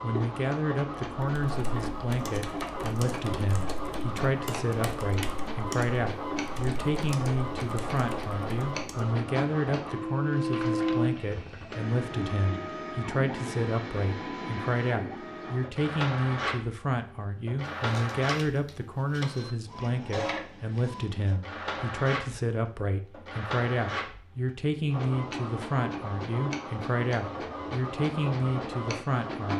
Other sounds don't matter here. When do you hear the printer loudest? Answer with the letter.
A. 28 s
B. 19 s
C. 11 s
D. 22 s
C.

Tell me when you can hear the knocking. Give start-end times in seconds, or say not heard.
not heard.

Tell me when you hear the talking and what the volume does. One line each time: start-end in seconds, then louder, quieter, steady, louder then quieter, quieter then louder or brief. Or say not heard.
0.0-29.5 steady.